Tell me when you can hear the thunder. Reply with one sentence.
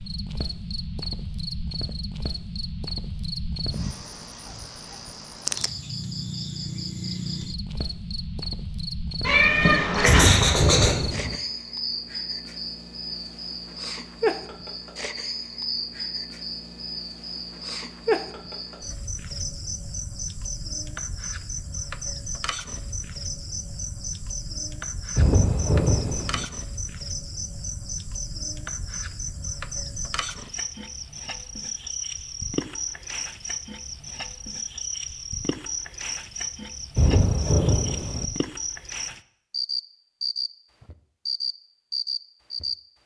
The thunder can be heard from 10.1 to 11.3 s, from 25.1 to 26.4 s and from 37.0 to 38.2 s.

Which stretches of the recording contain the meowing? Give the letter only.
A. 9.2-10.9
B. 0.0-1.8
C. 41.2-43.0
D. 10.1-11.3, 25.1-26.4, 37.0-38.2
A.